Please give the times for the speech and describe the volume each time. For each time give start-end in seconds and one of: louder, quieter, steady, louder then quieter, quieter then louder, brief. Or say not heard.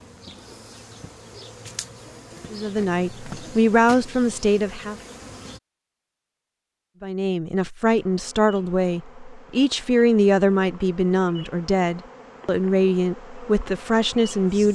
2.5-5.0 brief
7.0-14.7 steady.